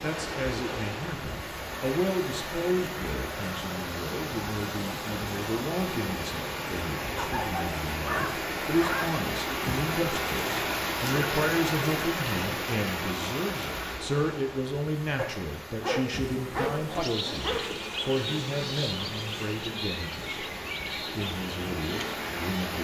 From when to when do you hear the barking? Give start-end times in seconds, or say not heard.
7.2-9.2, 15.2-17.6.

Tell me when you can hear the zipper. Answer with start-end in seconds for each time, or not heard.
not heard.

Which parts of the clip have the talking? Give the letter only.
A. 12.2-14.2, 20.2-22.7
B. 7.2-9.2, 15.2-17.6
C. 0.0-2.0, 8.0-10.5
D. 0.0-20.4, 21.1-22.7
D.